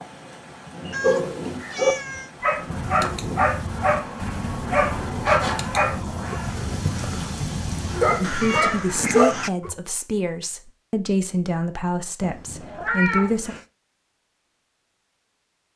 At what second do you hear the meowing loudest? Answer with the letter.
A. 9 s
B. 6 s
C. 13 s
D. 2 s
C.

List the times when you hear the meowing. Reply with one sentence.
You can hear the meowing from 0.8 to 2.3 s, from 7.9 to 8.9 s and from 12.2 to 13.7 s.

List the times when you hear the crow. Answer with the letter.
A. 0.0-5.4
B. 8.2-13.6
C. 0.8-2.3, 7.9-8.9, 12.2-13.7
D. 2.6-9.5
D.